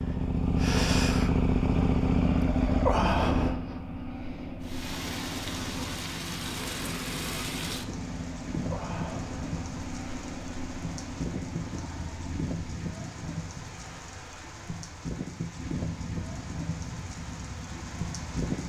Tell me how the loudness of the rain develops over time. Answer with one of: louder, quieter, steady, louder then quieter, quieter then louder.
steady.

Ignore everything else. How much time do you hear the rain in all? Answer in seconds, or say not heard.
14 s.